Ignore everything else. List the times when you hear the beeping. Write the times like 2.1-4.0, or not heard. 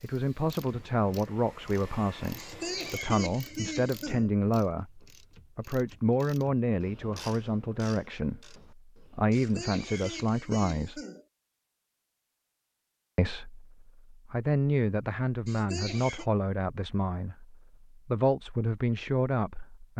not heard.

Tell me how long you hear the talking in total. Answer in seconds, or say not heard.
18 s.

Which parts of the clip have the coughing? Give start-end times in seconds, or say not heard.
2.4-4.3, 9.3-11.2, 15.4-16.2.